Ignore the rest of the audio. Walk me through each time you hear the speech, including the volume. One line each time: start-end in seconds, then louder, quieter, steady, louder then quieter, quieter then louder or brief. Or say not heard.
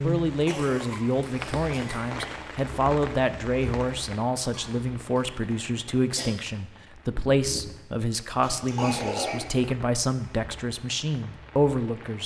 0.0-12.2 steady.